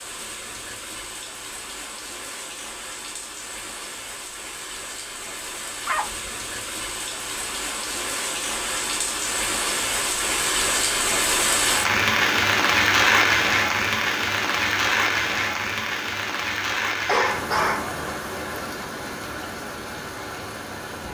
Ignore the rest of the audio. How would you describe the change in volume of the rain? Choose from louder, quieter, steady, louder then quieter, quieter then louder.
louder then quieter.